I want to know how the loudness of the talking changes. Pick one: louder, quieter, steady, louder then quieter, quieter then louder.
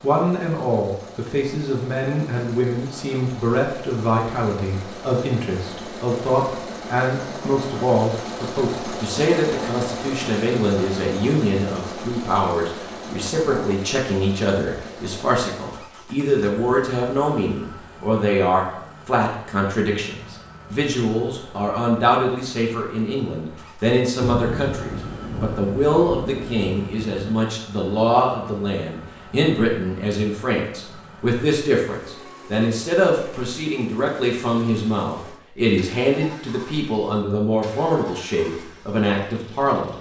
steady.